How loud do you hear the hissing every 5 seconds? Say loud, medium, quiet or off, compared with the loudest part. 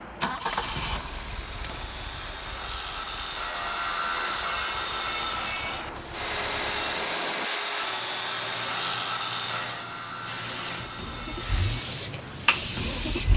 quiet, medium, loud.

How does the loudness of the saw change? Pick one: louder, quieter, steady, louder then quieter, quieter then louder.
louder then quieter.